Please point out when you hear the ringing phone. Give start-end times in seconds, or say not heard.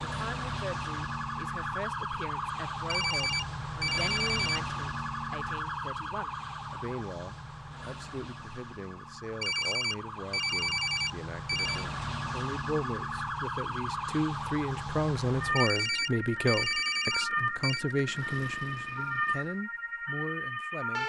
2.9-4.6, 9.4-11.8, 15.6-17.9.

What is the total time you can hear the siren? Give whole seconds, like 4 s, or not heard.
21 s.